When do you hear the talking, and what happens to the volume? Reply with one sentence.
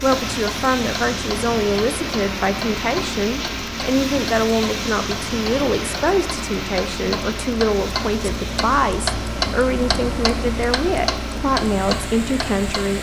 You can hear the talking from 0.0 to 12.9 s, at a steady volume.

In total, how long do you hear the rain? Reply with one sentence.
The rain can be heard for 13 seconds in total.